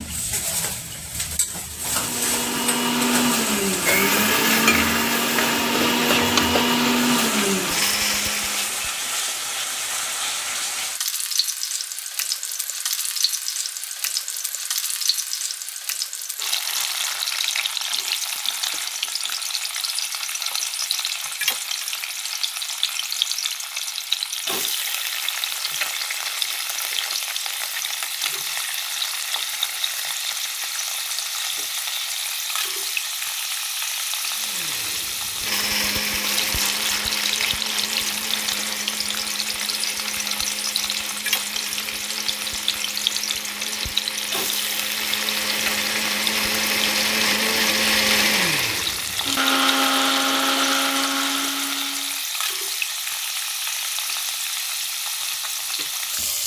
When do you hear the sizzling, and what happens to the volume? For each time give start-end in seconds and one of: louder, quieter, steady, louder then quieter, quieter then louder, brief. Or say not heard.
0.0-56.4 steady.